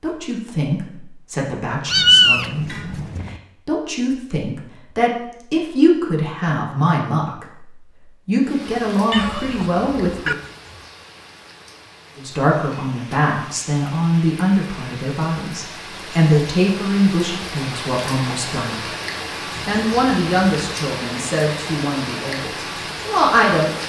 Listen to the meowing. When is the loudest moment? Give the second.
2 s.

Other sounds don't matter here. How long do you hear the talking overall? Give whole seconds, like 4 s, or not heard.
21 s.